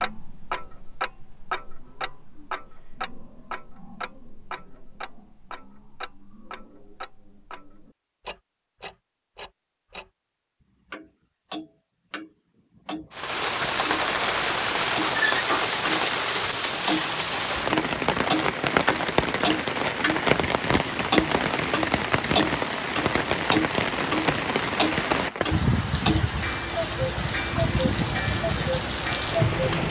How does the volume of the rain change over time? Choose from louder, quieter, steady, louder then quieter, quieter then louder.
steady.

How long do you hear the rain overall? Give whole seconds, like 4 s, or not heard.
17 s.